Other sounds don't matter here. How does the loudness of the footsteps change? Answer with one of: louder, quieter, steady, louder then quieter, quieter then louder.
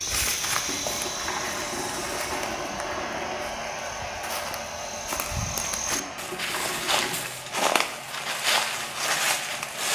quieter then louder.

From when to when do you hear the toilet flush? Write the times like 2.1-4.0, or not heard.
0.7-3.5, 6.0-7.2.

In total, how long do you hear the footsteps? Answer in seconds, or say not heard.
10 s.